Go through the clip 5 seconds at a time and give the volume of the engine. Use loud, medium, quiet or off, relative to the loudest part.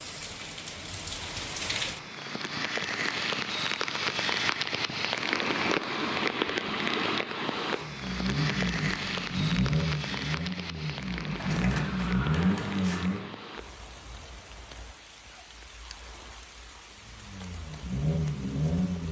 off, loud, loud, loud.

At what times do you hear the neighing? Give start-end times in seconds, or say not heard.
11.3-13.2.